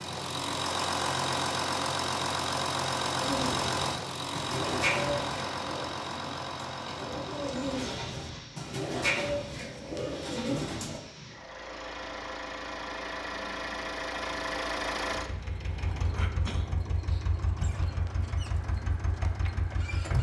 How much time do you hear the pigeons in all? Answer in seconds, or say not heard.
8 s.